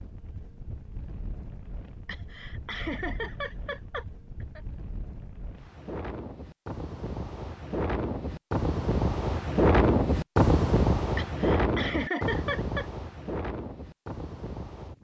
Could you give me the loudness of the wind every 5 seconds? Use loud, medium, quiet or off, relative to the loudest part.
quiet, loud, loud.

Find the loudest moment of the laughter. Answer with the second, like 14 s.
12 s.